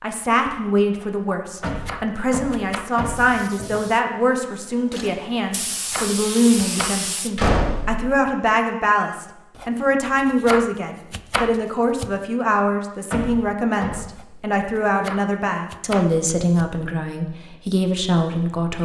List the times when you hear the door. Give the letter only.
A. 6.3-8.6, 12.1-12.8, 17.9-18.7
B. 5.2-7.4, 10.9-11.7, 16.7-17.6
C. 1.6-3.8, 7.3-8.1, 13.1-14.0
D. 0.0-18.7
C.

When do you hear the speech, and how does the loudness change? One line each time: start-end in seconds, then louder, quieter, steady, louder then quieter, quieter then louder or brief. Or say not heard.
0.0-18.7 steady.